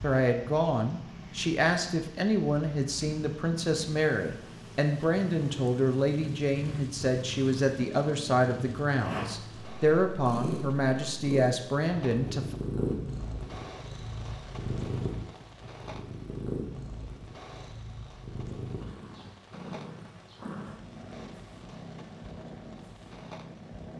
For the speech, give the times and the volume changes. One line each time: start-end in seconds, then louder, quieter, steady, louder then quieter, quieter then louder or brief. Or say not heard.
0.0-12.6 steady.